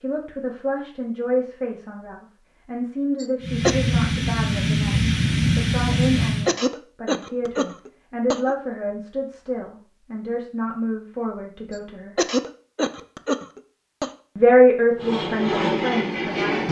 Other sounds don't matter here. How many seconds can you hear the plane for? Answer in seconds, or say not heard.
5 s.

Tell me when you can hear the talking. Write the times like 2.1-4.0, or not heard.
0.0-12.2, 14.3-16.6.